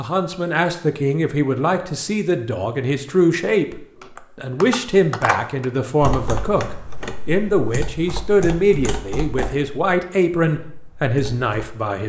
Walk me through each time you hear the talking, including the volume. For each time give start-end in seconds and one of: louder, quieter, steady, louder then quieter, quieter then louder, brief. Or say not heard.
0.0-12.0 steady.